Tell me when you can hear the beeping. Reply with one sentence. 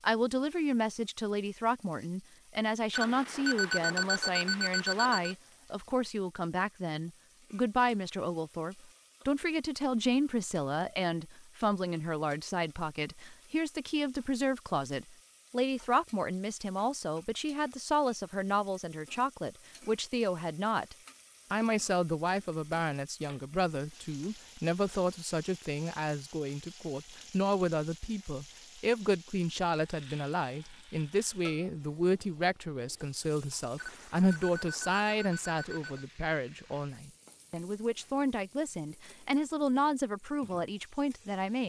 You can hear the beeping from 2.9 to 5.3 s and from 33.8 to 36.0 s.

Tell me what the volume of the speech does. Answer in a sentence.
The loudness of the speech stays about the same.